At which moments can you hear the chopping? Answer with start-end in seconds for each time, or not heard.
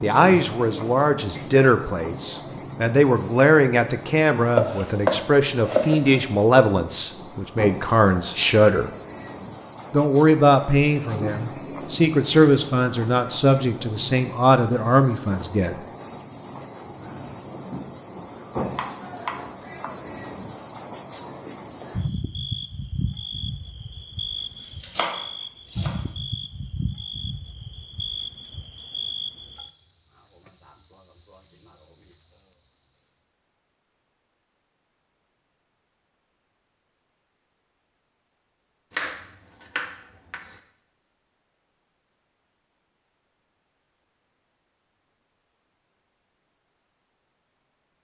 4.5-6.2, 18.8-19.9, 24.6-26.0, 38.9-40.6.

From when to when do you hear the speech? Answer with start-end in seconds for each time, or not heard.
0.0-8.9, 9.9-15.8.